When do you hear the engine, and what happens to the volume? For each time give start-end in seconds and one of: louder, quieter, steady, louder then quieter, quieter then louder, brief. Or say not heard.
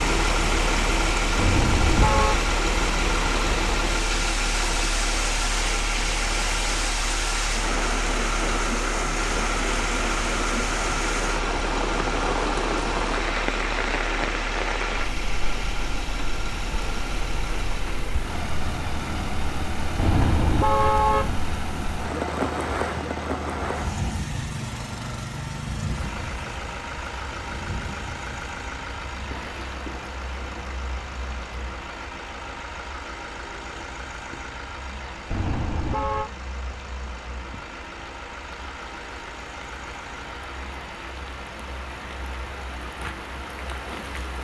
0.0-44.3 quieter.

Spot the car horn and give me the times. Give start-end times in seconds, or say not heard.
1.4-2.4, 19.9-21.4, 35.3-36.3.